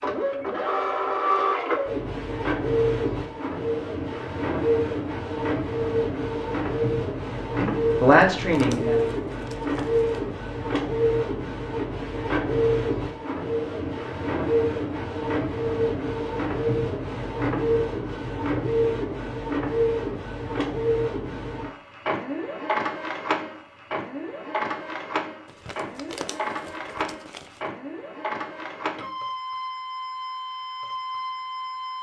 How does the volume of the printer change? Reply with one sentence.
The loudness of the printer goes down.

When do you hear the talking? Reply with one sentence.
The talking can be heard from 7.5 to 9.0 s.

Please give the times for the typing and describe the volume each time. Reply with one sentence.
You can't hear the typing here.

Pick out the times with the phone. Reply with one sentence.
You can't hear the phone here.